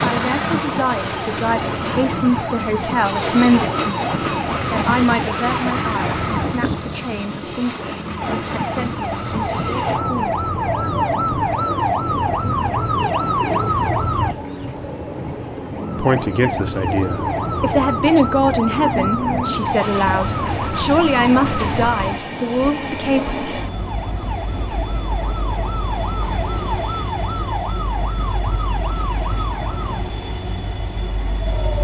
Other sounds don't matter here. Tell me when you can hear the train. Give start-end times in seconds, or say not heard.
0.0-31.7.